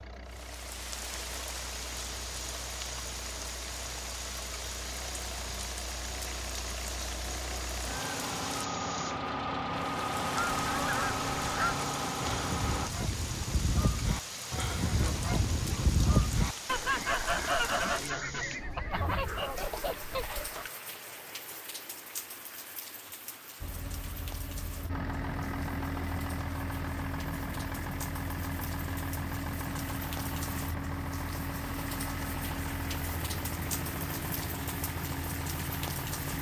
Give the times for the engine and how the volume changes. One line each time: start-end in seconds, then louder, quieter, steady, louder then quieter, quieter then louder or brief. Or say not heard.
0.0-12.9 louder
23.6-36.3 steady.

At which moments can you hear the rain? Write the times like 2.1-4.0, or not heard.
0.0-36.3.